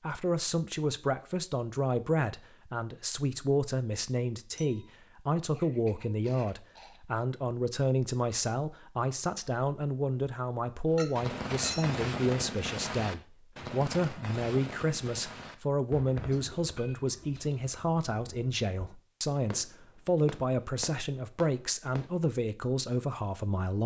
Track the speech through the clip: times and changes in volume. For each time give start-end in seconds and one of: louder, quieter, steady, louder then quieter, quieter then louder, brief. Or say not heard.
0.0-23.8 steady.